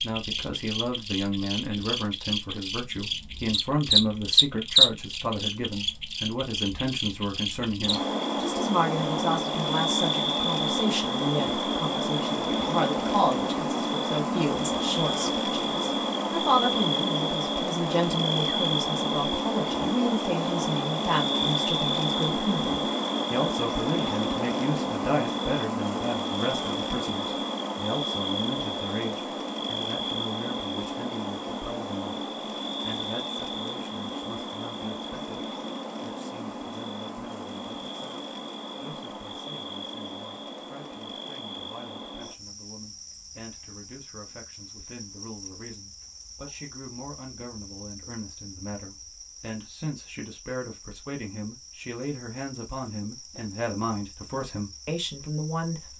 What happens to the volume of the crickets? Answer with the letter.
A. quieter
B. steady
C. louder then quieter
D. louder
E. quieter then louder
A.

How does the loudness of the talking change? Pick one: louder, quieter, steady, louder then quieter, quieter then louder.
quieter then louder.